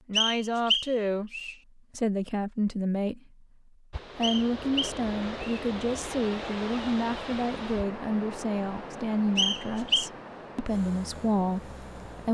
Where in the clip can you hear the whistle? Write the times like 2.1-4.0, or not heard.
0.1-1.6, 4.2-5.6, 9.3-10.1.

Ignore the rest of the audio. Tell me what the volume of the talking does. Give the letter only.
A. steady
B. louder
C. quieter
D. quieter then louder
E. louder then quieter
A.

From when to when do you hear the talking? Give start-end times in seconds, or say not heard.
0.1-3.2, 4.2-12.2.